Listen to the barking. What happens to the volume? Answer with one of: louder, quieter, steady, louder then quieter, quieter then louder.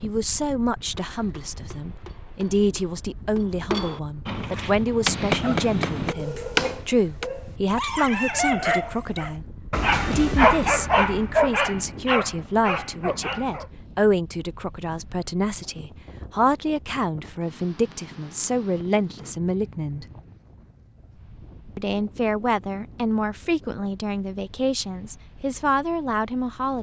louder then quieter.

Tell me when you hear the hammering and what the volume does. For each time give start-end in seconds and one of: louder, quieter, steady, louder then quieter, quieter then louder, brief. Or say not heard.
0.8-7.3 louder.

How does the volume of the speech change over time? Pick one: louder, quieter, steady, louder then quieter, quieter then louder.
steady.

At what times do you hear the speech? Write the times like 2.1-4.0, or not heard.
0.0-20.1, 21.8-26.7.